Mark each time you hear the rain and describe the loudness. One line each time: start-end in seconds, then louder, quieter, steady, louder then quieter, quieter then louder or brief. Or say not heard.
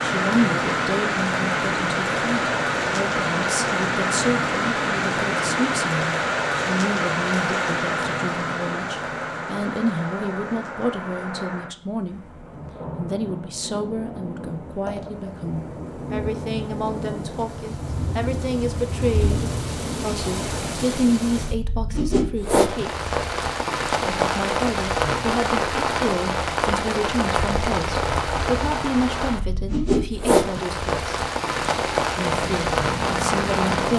0.0-33.9 quieter then louder.